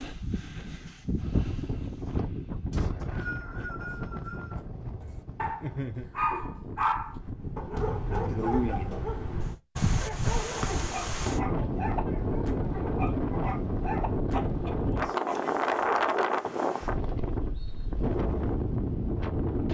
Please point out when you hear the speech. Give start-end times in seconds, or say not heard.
not heard.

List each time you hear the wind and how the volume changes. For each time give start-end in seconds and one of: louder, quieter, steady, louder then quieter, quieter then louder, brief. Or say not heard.
0.0-19.7 quieter then louder.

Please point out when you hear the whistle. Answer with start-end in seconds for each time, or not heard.
2.7-4.6, 10.6-11.3, 16.4-17.9.